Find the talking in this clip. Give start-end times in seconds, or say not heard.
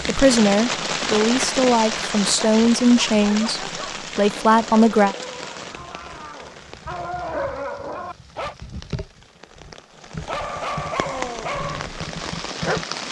0.1-5.2.